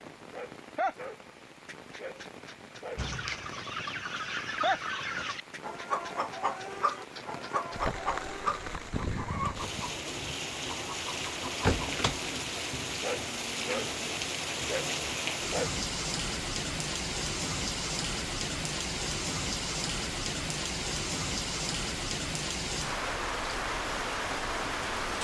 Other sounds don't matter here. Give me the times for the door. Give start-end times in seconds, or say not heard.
11.2-12.2.